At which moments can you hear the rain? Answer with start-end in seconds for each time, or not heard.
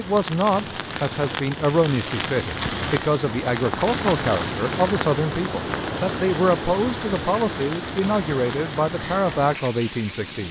0.0-10.4.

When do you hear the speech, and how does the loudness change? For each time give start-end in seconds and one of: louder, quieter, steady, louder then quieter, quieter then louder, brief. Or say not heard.
0.0-10.4 steady.